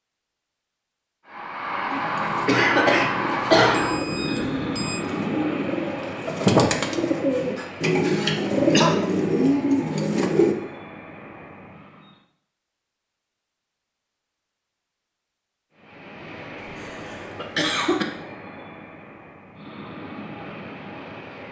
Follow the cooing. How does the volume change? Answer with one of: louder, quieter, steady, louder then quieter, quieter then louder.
louder.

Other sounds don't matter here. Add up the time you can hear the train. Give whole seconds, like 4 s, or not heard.
17 s.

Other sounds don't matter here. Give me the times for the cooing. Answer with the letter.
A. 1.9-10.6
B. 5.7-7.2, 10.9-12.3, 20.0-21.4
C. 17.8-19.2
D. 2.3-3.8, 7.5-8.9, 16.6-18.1
A.